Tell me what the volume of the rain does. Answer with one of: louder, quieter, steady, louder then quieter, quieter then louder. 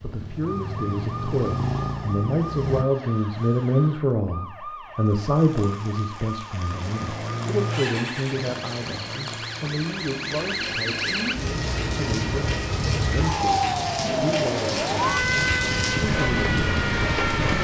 louder.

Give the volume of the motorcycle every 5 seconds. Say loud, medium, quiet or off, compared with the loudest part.
loud, loud, medium, off.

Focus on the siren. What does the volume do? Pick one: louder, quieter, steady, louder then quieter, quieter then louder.
louder.